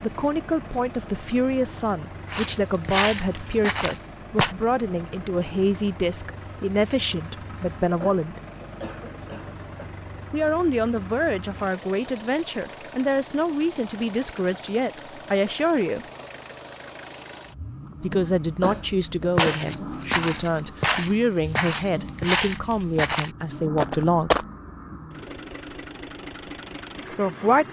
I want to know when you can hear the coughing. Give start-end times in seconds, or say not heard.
8.0-9.8, 18.6-19.7.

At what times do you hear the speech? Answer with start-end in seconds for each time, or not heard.
0.0-8.4, 10.3-16.1, 18.0-24.4, 27.1-27.6.